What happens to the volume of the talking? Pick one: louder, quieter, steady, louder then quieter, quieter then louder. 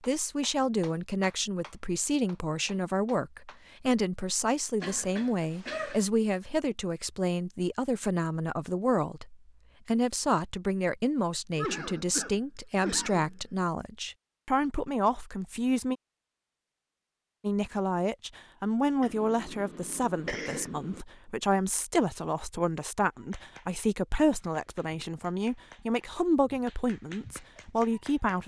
steady.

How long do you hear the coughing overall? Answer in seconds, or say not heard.
5 s.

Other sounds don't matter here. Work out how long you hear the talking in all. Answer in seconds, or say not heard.
27 s.